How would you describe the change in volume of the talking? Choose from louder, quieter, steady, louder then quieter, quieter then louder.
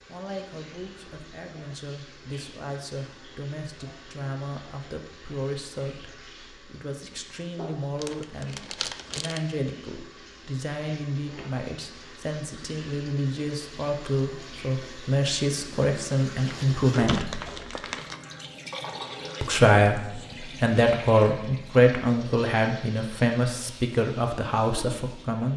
louder.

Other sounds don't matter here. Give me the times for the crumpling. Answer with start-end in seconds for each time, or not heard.
8.0-9.4, 16.4-18.2.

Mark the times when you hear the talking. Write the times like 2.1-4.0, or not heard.
0.1-17.4, 19.4-25.5.